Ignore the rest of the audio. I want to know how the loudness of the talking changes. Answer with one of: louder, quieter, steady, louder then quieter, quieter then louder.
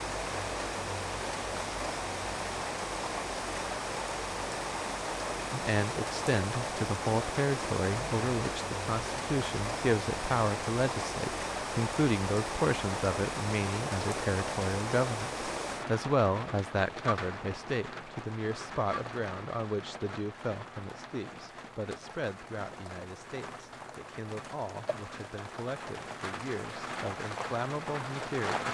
quieter.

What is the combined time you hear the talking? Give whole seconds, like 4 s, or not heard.
23 s.